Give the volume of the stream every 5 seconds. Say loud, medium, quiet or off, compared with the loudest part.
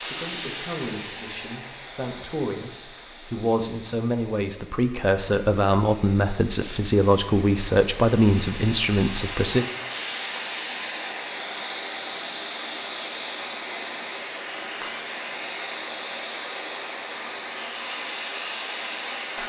medium, medium, loud, loud.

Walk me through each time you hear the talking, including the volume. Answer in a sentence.
You can hear the talking from 0.1 to 9.7 s, getting louder.